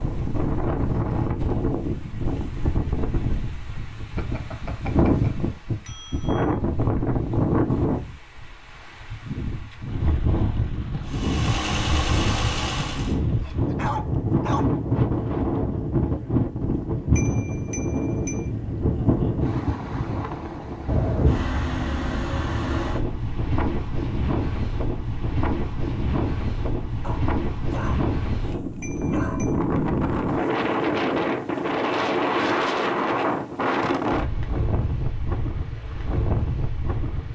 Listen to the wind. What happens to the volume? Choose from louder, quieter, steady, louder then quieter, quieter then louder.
steady.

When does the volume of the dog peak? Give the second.
14 s.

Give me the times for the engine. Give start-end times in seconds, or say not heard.
11.0-13.2.